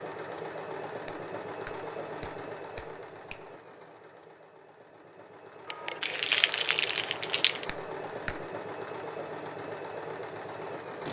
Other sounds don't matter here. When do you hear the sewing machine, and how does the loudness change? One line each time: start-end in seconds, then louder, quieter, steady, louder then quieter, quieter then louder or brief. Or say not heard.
0.0-11.0 quieter then louder.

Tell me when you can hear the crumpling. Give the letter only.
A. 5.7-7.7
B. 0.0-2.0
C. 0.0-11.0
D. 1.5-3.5
A.